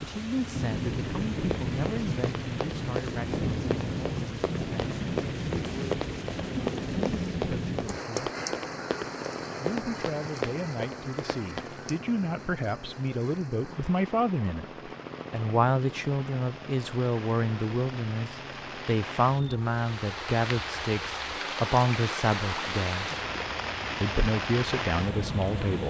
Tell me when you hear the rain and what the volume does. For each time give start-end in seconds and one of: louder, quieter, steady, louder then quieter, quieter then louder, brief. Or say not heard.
0.0-25.8 quieter then louder.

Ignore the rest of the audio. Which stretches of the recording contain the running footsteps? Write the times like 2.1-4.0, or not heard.
1.4-11.9.